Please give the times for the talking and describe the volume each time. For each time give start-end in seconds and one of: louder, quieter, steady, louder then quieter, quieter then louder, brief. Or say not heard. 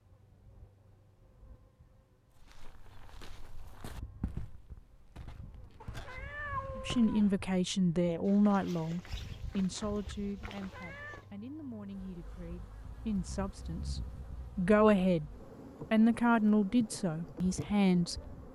6.8-15.3 quieter then louder
15.9-18.5 brief.